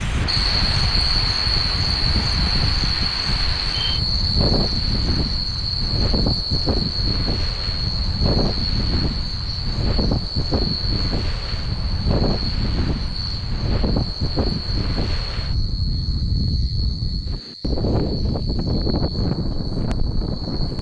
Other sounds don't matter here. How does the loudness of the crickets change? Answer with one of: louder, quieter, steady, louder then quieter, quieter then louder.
quieter.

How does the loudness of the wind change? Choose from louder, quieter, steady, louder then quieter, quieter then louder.
steady.